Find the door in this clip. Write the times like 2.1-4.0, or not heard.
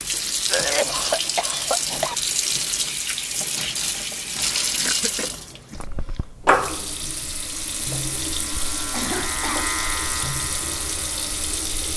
not heard.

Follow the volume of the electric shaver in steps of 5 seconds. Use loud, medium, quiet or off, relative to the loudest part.
off, loud, loud.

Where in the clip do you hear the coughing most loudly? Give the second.
1 s.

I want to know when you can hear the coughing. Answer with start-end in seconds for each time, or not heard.
0.5-2.1, 4.4-6.2, 8.9-9.8.